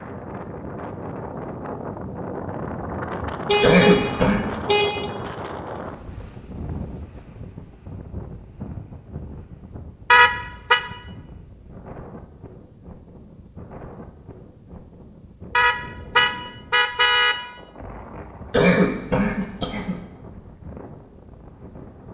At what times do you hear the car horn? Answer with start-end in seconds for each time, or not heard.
3.5-5.1, 10.1-10.8, 15.6-17.4.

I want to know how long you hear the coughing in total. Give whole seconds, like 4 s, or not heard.
2 s.